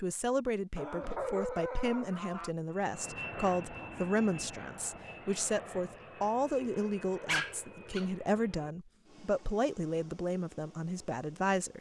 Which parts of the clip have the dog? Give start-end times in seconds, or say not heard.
0.8-2.5, 7.2-8.1.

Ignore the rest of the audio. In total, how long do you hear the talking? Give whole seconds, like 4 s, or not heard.
12 s.